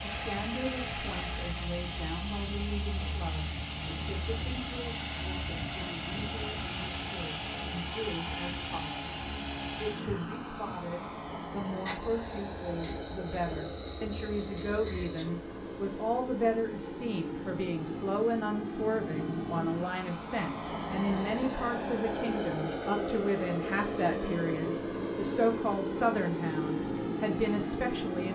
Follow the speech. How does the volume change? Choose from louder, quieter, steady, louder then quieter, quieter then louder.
louder.